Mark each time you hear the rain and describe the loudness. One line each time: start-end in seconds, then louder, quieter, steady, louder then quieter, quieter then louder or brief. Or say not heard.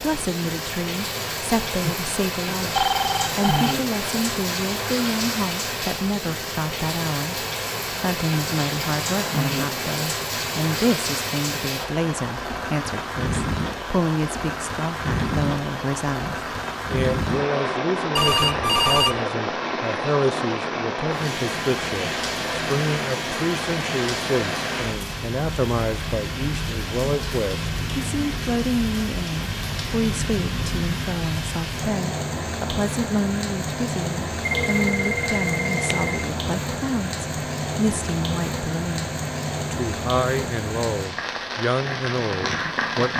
0.0-43.1 steady.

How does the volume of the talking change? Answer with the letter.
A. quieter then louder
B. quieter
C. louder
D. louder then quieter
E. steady
E.